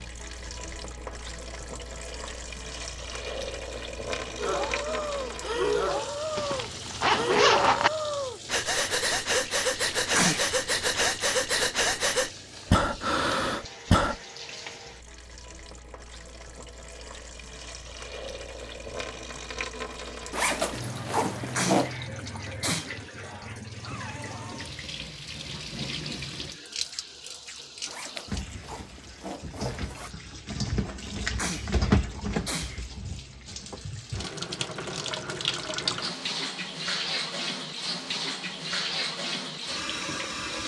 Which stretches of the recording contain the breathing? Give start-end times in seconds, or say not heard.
4.3-14.2.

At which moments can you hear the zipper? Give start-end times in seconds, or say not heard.
6.3-7.9, 20.3-21.9, 27.9-30.1.